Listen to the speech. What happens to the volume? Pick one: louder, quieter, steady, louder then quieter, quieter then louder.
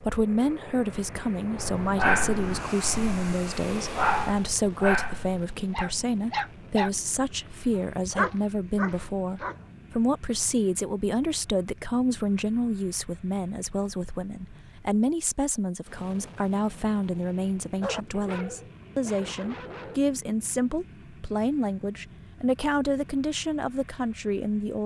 steady.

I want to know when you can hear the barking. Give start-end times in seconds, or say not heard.
1.6-9.7, 17.8-20.0.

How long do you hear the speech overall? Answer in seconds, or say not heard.
25 s.